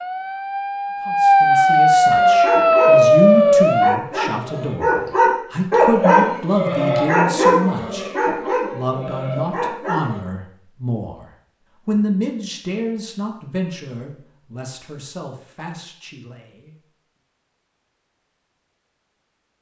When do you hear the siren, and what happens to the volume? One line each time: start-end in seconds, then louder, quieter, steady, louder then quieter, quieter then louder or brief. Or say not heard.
0.0-4.0 louder.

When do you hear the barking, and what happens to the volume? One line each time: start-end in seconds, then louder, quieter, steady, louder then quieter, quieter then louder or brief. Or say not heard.
2.1-10.2 louder then quieter.